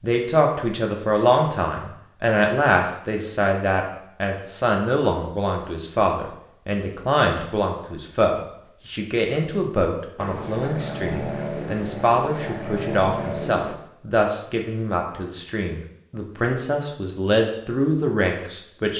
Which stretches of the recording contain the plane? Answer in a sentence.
The plane can be heard from 10.2 to 13.8 s.